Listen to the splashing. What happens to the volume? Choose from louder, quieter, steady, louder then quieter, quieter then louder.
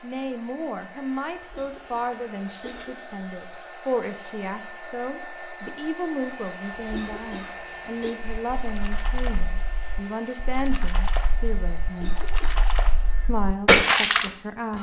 louder.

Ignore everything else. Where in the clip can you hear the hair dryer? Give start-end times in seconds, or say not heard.
0.0-14.7.